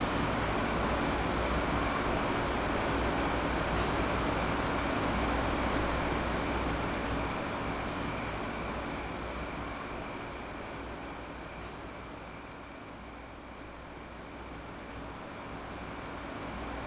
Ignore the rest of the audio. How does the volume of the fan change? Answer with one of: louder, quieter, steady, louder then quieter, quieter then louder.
quieter.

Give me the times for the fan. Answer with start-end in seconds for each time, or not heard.
0.0-16.8.